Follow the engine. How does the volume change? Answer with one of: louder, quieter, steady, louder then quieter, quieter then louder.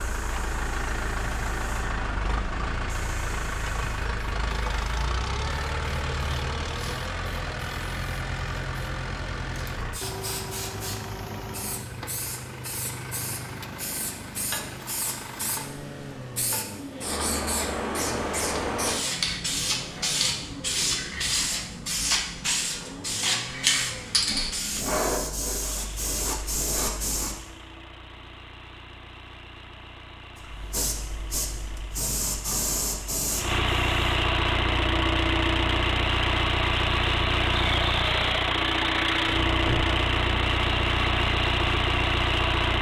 quieter then louder.